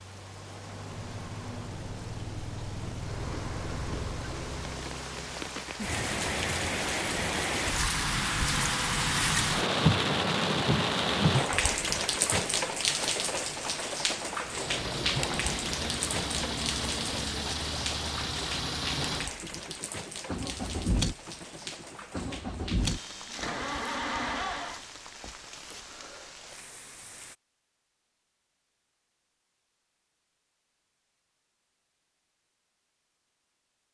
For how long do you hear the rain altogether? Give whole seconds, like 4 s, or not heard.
27 s.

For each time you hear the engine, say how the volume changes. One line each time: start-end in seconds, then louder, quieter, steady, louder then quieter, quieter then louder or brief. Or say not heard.
14.4-24.9 steady.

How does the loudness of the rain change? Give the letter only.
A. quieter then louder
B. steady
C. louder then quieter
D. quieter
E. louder
C.